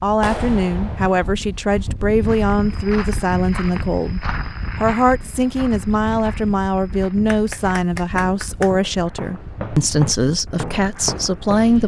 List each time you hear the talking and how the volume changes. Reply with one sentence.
You can hear the talking from 0.0 to 11.8 s, at a steady volume.